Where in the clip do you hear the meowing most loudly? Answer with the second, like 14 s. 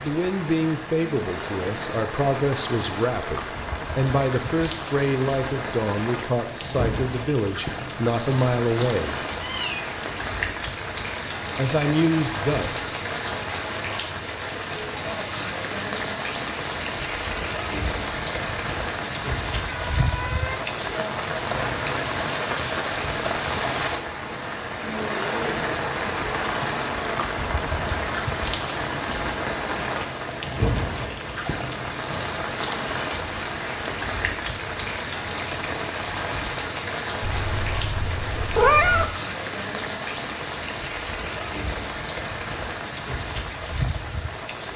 39 s.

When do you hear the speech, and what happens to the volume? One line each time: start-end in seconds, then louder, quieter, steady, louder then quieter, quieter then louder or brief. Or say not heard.
0.0-9.2 steady
11.6-12.9 brief.